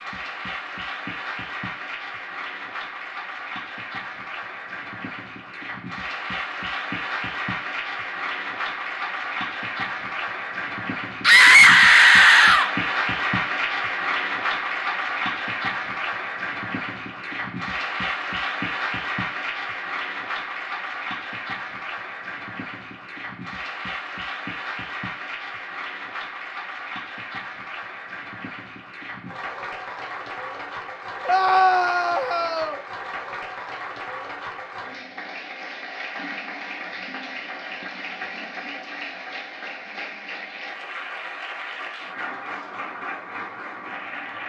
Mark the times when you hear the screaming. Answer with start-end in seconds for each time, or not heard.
11.2-12.7, 31.2-32.8.